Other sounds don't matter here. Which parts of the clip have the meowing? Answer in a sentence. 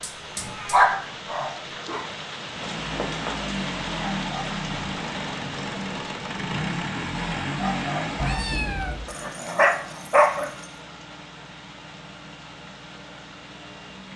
The meowing can be heard from 0.3 to 1.5 s and from 8.2 to 9.1 s.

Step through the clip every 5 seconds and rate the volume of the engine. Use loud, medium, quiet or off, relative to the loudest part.
loud, loud, quiet.